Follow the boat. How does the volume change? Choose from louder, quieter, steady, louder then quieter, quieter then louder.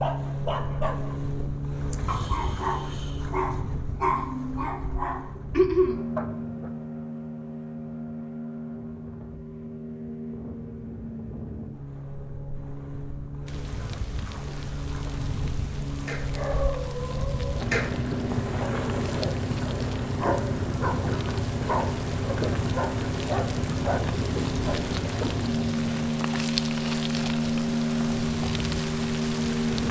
louder.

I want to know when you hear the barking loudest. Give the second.
6 s.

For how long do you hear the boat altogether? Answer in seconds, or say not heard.
30 s.